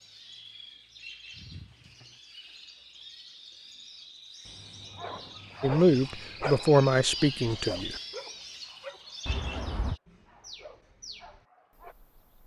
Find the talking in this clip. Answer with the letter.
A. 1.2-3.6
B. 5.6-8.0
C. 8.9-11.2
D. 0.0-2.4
B.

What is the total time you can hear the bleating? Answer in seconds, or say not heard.
not heard.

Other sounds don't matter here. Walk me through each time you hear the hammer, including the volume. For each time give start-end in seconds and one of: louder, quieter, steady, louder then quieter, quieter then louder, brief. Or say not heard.
not heard.